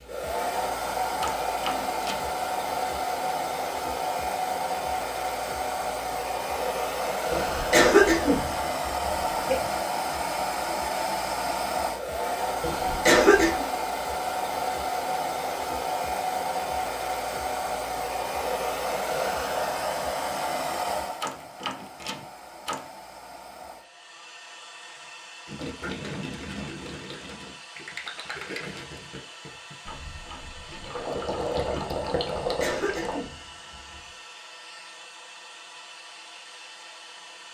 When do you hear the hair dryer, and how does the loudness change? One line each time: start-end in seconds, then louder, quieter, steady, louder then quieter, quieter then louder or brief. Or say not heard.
0.0-37.5 quieter.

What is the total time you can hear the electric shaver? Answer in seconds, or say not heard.
not heard.